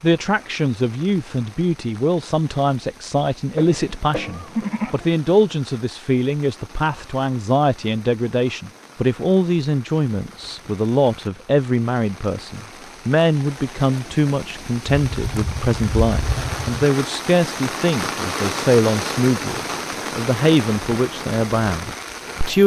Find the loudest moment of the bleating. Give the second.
5 s.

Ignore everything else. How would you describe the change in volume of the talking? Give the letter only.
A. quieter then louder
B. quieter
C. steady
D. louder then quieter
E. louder
C.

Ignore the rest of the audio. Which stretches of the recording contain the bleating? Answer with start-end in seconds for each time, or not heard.
3.5-5.0, 14.9-16.8.